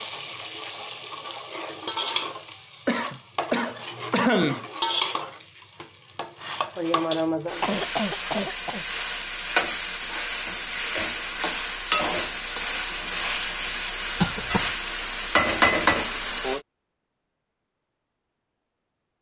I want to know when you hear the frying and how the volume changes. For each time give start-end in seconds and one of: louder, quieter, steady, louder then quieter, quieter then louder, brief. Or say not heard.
0.0-16.6 louder.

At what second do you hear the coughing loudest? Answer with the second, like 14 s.
4 s.